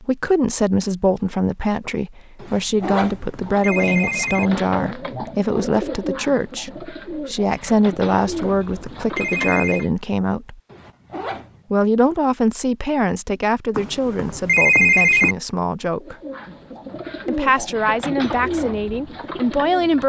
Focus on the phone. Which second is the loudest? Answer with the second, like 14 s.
15 s.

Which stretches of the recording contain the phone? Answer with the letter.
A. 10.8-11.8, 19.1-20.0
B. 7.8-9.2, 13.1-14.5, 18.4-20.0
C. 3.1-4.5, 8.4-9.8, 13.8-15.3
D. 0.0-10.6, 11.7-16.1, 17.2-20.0
C.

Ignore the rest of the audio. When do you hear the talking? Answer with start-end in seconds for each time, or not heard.
0.0-10.6, 11.7-16.1, 17.2-20.0.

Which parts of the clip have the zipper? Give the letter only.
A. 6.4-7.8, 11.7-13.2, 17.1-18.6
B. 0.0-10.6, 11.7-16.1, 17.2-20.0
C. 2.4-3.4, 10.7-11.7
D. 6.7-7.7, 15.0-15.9
C.